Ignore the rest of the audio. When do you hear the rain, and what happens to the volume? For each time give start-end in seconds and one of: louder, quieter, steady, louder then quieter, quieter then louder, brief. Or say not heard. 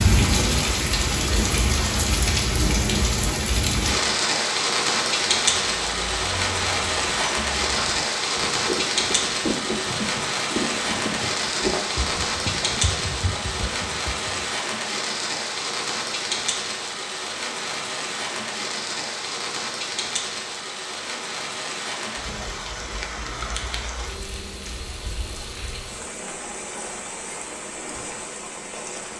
0.0-29.1 quieter.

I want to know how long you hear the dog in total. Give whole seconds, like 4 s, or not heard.
not heard.